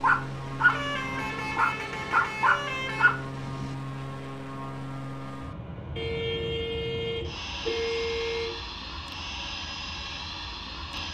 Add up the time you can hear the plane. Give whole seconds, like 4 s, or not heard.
11 s.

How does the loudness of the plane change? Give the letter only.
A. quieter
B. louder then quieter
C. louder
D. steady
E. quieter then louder
D.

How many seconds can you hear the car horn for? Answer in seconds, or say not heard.
5 s.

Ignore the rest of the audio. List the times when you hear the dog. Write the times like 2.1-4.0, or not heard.
0.0-3.8.